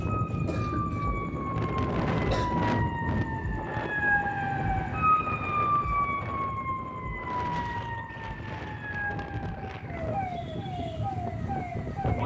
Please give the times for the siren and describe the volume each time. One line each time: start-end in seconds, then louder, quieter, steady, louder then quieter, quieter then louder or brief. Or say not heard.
0.0-12.2 louder then quieter.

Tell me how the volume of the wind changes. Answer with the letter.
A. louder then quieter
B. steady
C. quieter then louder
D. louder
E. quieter
E.